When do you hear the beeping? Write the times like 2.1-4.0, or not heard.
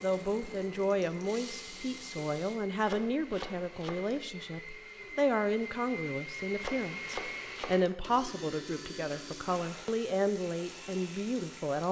not heard.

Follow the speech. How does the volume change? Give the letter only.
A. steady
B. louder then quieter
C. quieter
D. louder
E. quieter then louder
A.